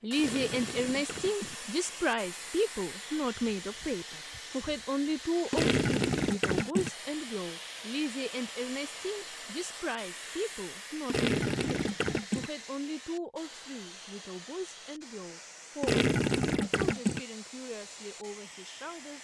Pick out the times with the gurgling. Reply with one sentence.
The gurgling can be heard from 0.1 to 1.6 s, from 5.5 to 6.9 s, from 11.1 to 12.5 s and from 15.8 to 17.2 s.